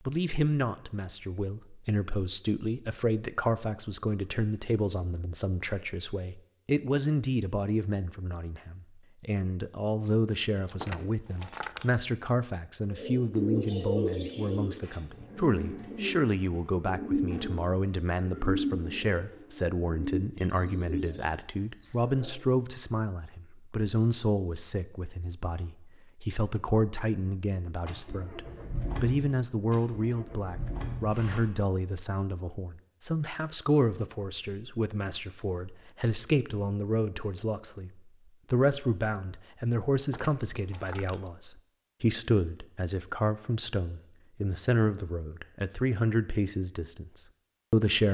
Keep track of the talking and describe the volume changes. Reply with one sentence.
The loudness of the talking stays about the same.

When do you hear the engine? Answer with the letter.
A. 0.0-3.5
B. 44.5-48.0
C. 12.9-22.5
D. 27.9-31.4
D.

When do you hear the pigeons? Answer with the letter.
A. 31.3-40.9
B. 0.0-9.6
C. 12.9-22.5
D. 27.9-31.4
C.